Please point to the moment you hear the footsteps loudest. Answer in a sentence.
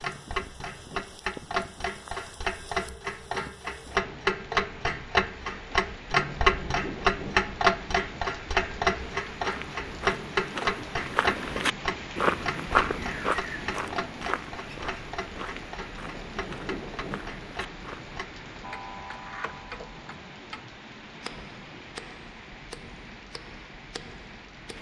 The volume of the footsteps peaks at 13 seconds.